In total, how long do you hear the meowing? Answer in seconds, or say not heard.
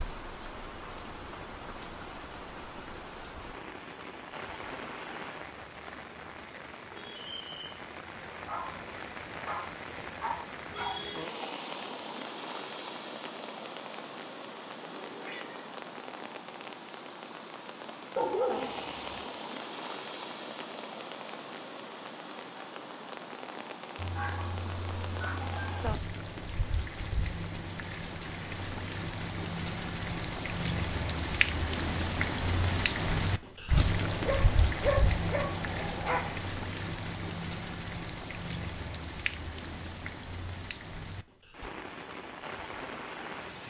3 s.